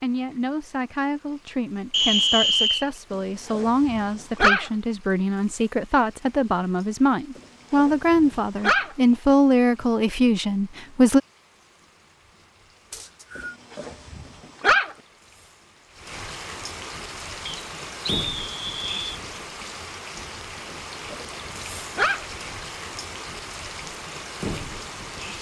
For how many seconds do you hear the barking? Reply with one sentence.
You can hear the barking for 6 seconds altogether.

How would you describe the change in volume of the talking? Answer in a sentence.
The loudness of the talking goes up.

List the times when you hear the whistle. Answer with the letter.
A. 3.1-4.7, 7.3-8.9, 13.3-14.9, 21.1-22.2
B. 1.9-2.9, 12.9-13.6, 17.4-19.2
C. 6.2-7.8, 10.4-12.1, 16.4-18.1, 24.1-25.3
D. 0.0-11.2
B.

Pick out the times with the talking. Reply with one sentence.
You can hear the talking from 0.0 to 11.2 s.